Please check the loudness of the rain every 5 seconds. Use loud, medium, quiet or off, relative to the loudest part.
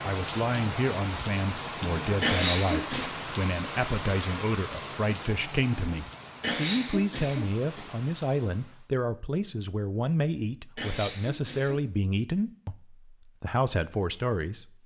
loud, medium, off.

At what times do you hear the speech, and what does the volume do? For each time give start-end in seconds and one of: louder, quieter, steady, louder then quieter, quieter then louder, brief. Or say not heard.
0.0-14.8 steady.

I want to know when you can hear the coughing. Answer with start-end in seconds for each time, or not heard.
2.2-3.1, 6.4-7.8, 10.8-11.8.